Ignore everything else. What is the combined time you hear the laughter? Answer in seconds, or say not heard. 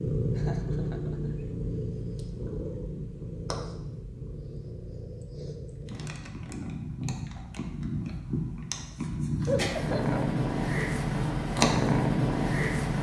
2 s.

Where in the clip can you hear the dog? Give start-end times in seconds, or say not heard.
not heard.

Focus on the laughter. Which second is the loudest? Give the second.
10 s.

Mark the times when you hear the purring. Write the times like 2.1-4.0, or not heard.
0.0-12.9.